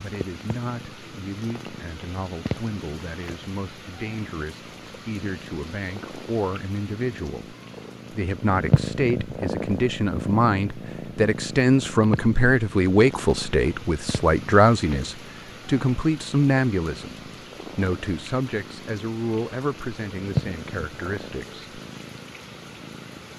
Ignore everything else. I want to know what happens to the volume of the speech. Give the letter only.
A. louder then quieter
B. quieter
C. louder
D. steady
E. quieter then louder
A.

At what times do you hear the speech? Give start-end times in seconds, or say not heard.
0.0-21.6.